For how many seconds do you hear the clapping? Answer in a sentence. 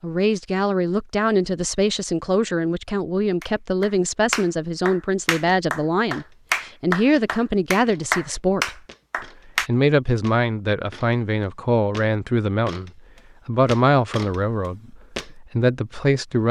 You can hear the clapping for 6 seconds altogether.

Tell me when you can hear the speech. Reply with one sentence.
The speech can be heard from 0.0 to 8.8 s and from 9.6 to 16.4 s.